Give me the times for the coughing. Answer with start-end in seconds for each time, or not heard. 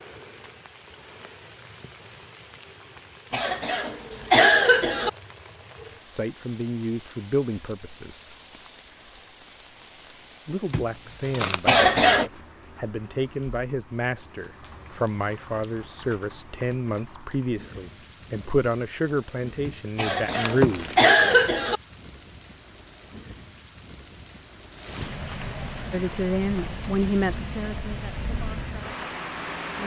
3.3-5.1, 11.7-12.3, 19.9-21.8.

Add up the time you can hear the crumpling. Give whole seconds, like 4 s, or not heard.
3 s.